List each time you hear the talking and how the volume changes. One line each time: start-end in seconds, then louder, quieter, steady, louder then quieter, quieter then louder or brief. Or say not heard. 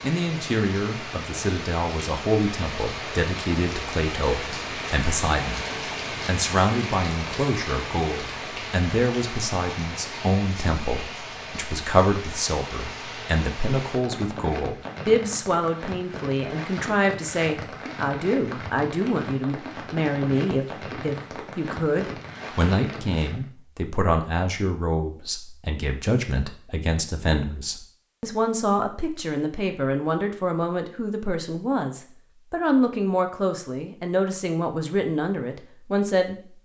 0.0-36.4 steady.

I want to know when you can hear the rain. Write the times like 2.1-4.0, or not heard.
0.0-23.4.